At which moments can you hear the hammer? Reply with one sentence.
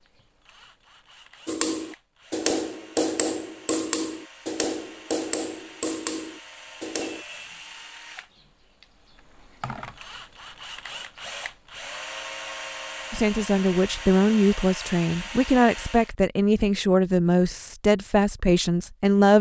You can hear the hammer from 1.4 to 7.2 s.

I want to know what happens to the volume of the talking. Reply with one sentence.
The volume of the talking stays about the same.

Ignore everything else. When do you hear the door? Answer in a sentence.
You can't hear the door here.